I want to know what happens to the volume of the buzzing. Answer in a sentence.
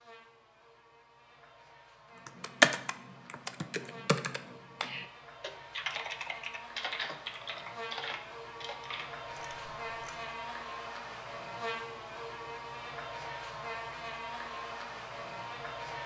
The volume of the buzzing goes up.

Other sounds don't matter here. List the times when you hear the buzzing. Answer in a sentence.
You can hear the buzzing from 0.0 to 16.0 s.